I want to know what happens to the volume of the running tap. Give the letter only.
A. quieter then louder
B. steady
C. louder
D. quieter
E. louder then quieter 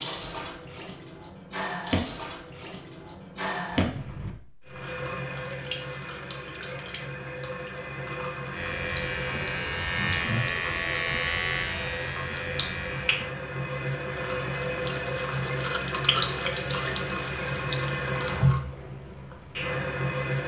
C.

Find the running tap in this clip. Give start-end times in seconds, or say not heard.
0.0-20.4.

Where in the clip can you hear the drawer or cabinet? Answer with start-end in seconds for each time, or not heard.
not heard.